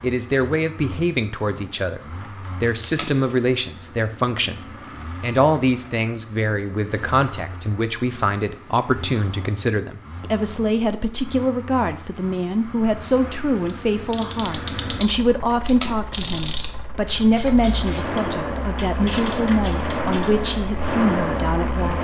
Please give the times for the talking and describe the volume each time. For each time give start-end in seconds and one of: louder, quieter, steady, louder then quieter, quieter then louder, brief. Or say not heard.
0.0-21.9 steady.